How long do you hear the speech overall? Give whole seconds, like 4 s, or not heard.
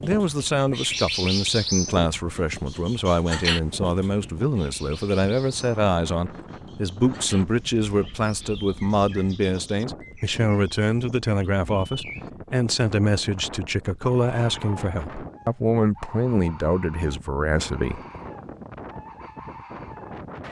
18 s.